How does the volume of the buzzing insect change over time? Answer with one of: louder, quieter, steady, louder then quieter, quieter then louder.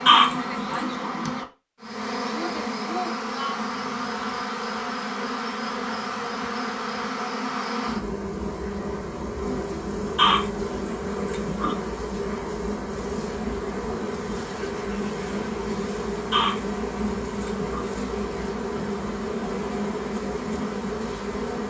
steady.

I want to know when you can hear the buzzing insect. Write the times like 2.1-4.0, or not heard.
0.0-21.6.